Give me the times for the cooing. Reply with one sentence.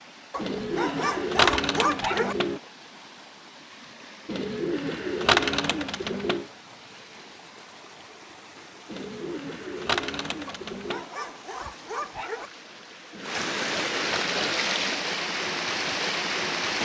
The cooing can be heard from 0.3 to 2.6 s, from 4.2 to 6.5 s, from 8.8 to 11.1 s and from 13.1 to 14.5 s.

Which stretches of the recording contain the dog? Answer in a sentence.
The dog can be heard from 0.3 to 2.4 s and from 10.4 to 12.5 s.